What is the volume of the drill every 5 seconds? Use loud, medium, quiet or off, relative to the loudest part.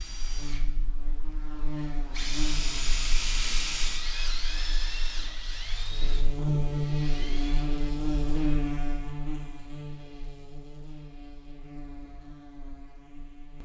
loud, medium, off.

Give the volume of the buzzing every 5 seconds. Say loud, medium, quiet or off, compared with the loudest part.
medium, loud, quiet.